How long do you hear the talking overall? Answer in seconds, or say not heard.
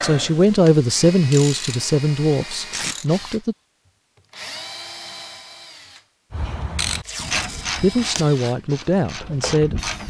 6 s.